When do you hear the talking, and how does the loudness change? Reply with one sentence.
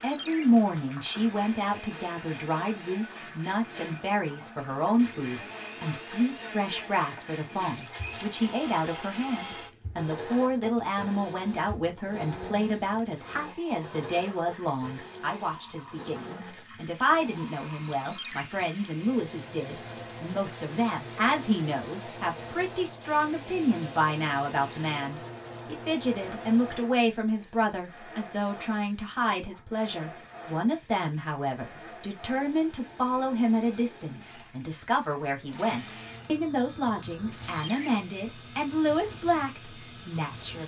You can hear the talking from 0.0 to 40.6 s, at a steady volume.